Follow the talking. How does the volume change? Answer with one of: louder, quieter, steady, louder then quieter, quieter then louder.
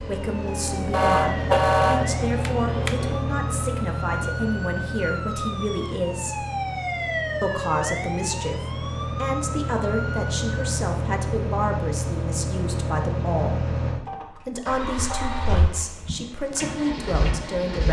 steady.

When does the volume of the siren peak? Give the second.
7 s.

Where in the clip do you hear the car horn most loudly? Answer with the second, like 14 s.
2 s.